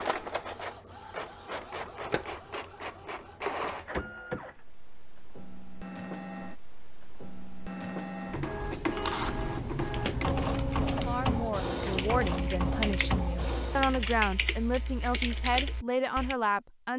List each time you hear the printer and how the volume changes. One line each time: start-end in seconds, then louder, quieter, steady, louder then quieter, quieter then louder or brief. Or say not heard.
0.0-14.1 louder.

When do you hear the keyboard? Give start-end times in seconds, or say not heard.
9.2-16.4.